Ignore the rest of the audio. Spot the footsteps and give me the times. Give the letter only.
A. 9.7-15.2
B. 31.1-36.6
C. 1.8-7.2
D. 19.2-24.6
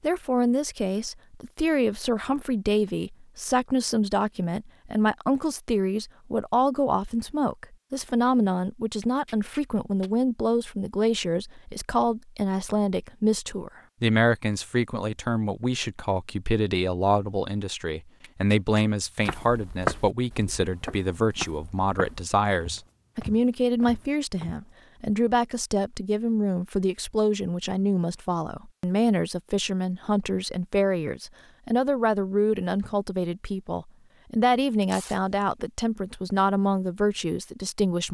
D.